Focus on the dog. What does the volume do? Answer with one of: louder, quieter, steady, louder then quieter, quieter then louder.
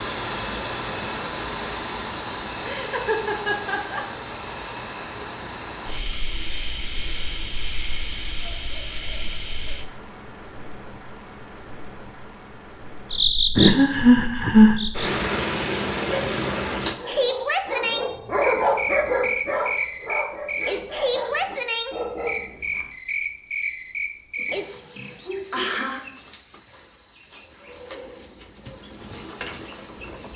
louder then quieter.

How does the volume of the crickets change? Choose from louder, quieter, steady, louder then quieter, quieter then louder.
quieter.